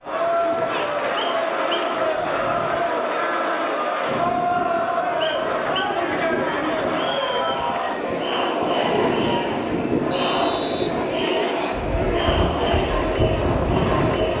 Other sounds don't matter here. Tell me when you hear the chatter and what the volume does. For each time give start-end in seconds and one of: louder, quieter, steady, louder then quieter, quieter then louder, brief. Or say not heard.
0.0-14.3 steady.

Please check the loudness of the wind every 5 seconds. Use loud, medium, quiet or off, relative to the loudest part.
medium, loud, loud.